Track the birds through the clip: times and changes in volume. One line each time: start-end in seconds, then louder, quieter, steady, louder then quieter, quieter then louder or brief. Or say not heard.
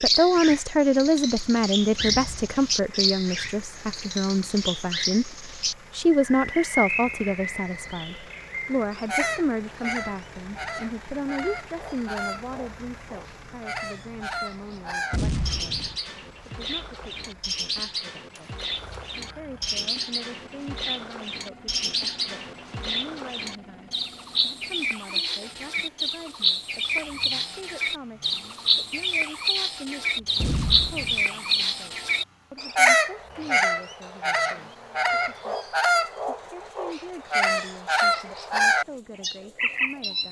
0.0-40.2 louder.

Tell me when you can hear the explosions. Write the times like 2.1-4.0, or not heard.
2.0-2.9, 15.1-15.9, 30.4-31.2.